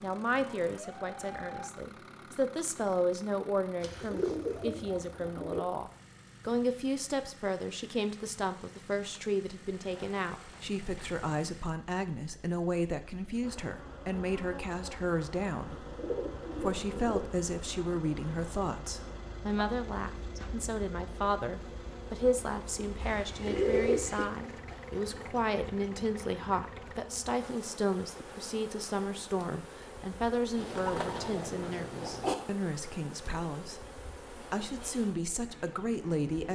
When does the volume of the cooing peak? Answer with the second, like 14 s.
24 s.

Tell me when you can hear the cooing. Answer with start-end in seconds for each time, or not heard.
3.8-5.6, 9.6-11.2, 15.7-17.2, 22.9-24.2, 30.6-32.4.